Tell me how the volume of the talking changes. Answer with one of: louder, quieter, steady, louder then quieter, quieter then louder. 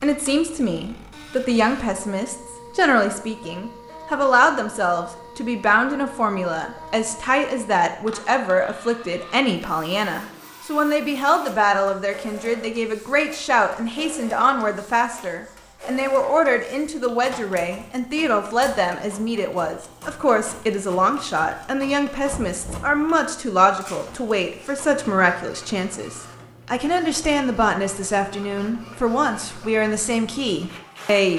steady.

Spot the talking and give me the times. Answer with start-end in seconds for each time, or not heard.
0.0-31.3.